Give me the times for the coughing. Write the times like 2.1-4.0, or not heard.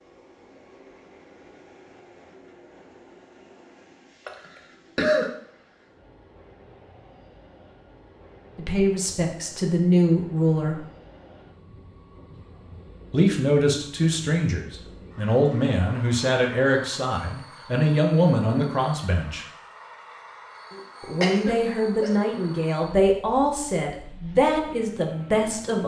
4.2-5.3, 20.7-22.1.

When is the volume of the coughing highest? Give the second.
5 s.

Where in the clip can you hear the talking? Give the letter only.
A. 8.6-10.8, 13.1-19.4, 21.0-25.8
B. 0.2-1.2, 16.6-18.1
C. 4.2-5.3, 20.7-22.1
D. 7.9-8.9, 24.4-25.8
A.